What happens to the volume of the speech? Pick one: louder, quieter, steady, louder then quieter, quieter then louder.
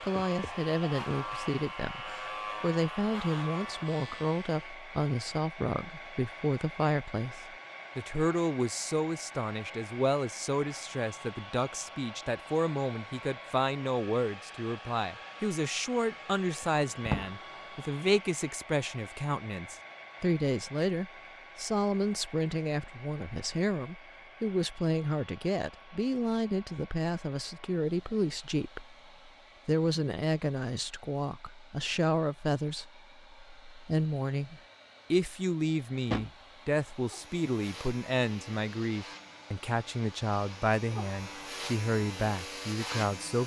steady.